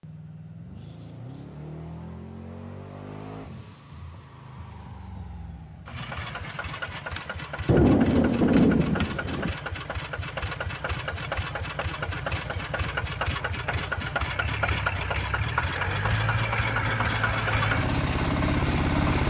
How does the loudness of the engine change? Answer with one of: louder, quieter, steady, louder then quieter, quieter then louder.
louder.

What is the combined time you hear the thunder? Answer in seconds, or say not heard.
2 s.